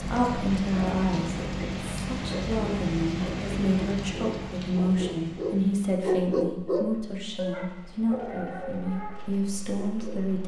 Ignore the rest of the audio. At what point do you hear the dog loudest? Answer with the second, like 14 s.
6 s.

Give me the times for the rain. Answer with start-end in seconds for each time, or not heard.
0.0-10.4.